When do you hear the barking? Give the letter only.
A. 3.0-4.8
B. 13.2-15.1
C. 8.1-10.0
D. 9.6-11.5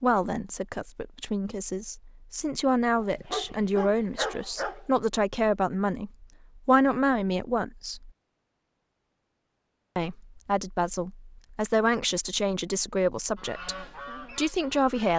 A.